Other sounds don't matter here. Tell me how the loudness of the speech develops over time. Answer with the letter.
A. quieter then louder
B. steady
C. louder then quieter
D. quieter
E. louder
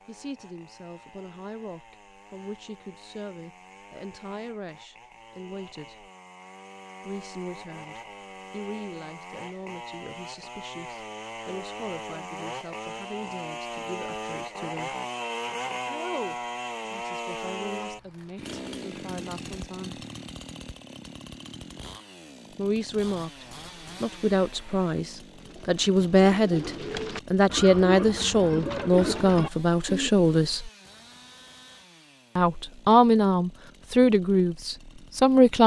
E.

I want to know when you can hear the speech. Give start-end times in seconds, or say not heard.
0.1-6.1, 7.0-14.9, 15.8-20.1, 22.5-30.7, 32.4-35.6.